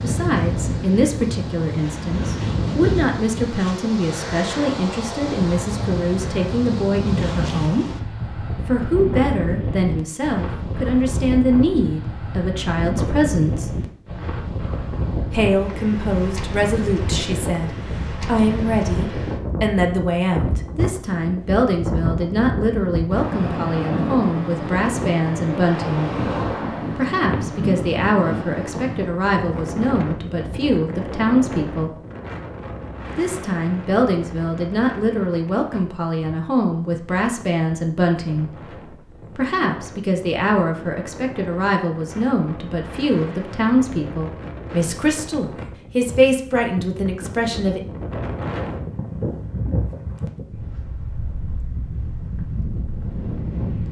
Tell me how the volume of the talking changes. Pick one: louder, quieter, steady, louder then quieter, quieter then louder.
steady.